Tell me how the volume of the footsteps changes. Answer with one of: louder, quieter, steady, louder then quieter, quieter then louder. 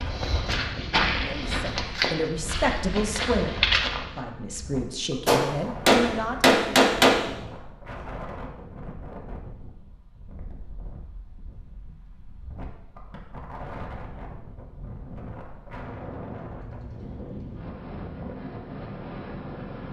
quieter then louder.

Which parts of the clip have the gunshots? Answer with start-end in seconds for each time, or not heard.
5.2-7.2.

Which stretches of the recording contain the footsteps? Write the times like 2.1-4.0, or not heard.
0.0-4.2.